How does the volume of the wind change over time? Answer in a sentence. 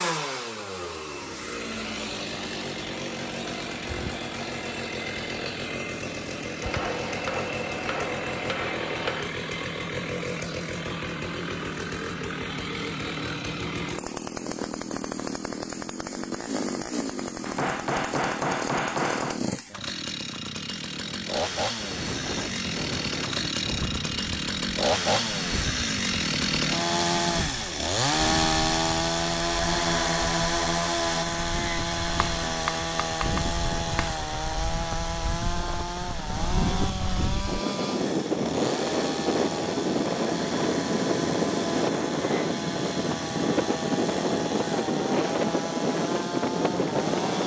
The loudness of the wind goes up.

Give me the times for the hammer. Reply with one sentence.
You can hear the hammer from 6.6 to 9.3 s, from 17.4 to 19.4 s and from 32.2 to 34.1 s.